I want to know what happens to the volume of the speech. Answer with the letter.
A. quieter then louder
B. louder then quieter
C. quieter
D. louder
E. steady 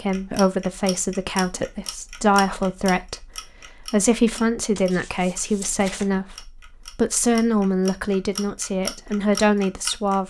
E.